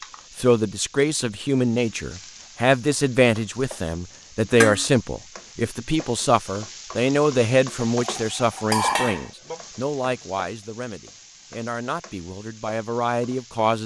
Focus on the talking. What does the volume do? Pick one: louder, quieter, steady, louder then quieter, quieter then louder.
quieter.